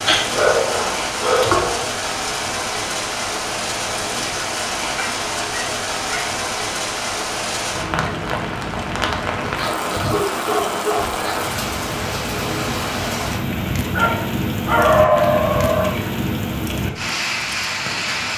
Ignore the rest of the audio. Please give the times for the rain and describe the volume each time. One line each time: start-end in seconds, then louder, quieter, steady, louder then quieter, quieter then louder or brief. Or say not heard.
0.0-18.3 steady.